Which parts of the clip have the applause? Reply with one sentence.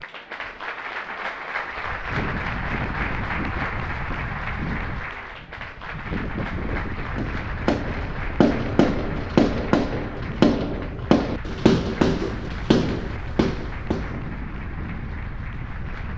The applause can be heard from 0.0 to 16.1 s.